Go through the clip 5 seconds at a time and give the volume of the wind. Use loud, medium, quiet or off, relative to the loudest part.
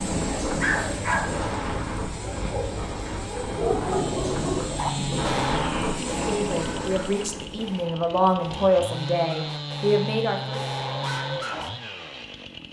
loud, loud, off.